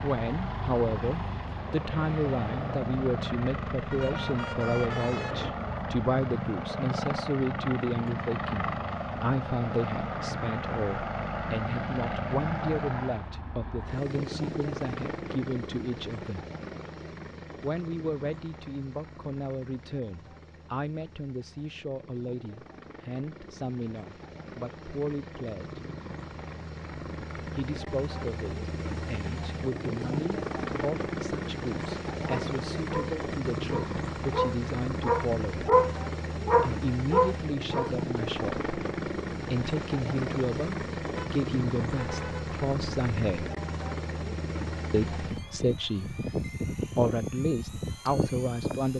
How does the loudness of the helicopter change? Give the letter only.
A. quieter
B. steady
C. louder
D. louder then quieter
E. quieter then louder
E.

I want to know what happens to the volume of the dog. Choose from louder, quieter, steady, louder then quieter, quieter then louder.
louder.